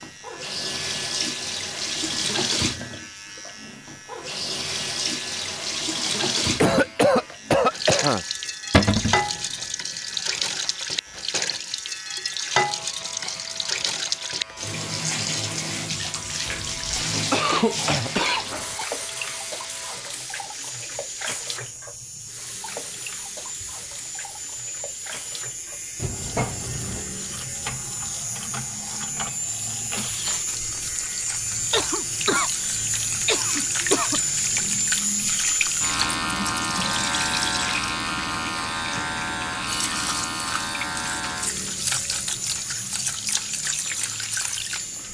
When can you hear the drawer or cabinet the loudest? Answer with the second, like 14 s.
9 s.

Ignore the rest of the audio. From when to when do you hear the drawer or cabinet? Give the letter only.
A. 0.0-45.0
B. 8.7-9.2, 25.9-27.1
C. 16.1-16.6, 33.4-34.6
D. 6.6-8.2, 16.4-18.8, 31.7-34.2
B.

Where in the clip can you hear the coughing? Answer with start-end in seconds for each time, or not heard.
6.6-8.2, 16.4-18.8, 31.7-34.2.